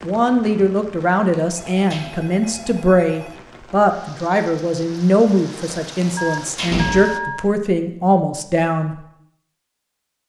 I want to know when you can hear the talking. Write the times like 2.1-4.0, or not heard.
0.0-8.9.